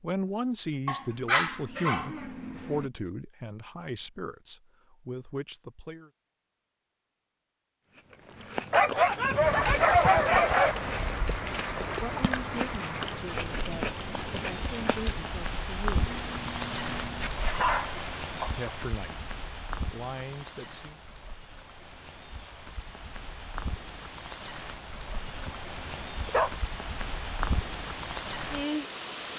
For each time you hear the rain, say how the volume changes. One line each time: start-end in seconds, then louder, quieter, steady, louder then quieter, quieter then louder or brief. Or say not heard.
9.4-29.3 quieter then louder.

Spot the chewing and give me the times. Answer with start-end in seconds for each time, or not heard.
7.9-15.3.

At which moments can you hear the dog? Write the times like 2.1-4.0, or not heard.
0.8-2.9, 8.7-10.8, 15.9-18.7, 25.1-26.5.